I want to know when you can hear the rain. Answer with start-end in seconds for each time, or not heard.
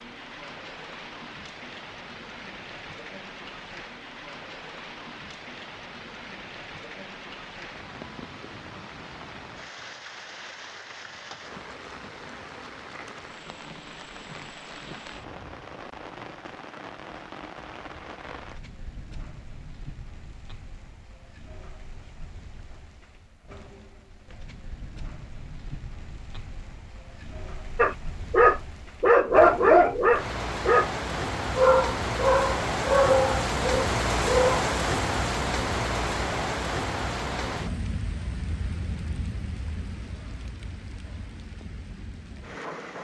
0.0-42.9.